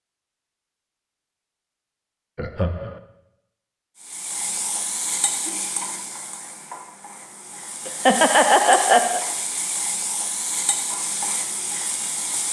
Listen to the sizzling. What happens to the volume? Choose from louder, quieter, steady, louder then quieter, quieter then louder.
quieter then louder.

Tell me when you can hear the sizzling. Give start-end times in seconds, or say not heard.
4.0-12.4.